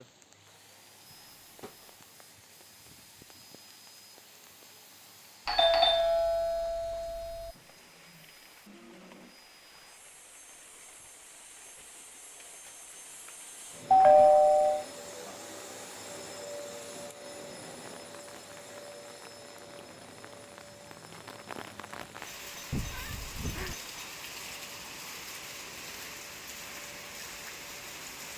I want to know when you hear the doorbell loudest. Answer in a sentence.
The loudest moment of the doorbell is at 14 seconds.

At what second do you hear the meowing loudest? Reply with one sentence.
The loudest moment of the meowing is at 23 seconds.